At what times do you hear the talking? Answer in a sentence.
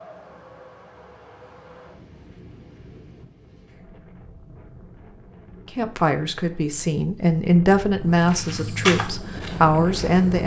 The talking can be heard from 5.7 to 10.4 s.